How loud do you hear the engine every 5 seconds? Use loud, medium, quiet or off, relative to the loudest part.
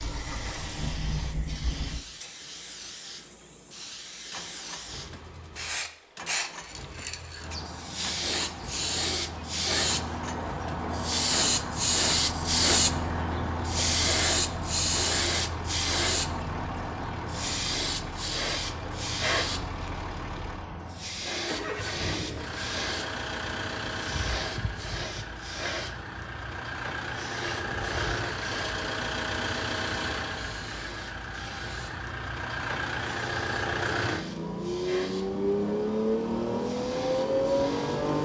quiet, quiet, quiet, quiet, medium, medium, medium, loud.